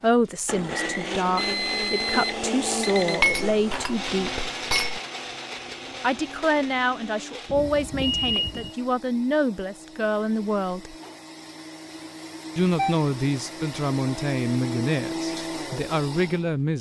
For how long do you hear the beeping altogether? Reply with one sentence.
The beeping can be heard for 4 seconds in total.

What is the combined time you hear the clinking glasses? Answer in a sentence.
The clinking glasses can be heard for 2 seconds in total.